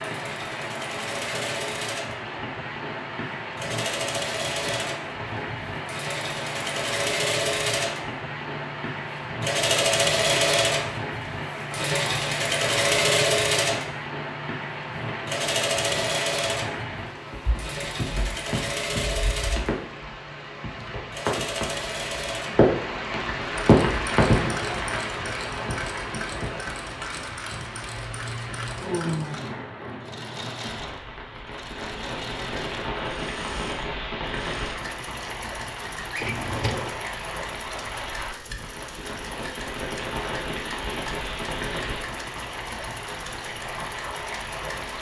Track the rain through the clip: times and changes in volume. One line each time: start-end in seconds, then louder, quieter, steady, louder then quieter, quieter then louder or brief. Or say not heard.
0.0-44.9 louder then quieter.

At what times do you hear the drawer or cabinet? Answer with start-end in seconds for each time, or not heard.
36.1-37.0.